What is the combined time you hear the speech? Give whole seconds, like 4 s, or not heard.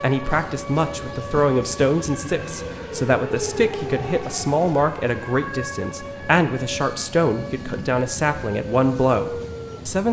10 s.